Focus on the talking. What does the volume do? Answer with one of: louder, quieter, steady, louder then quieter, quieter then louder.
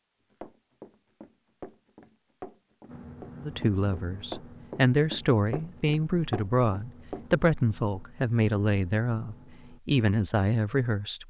steady.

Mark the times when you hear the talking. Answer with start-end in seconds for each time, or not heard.
3.4-11.2.